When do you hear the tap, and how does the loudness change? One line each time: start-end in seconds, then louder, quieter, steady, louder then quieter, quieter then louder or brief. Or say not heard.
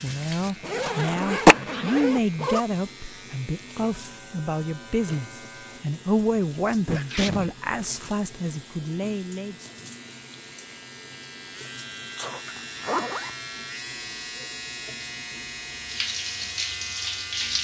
0.0-17.6 quieter then louder.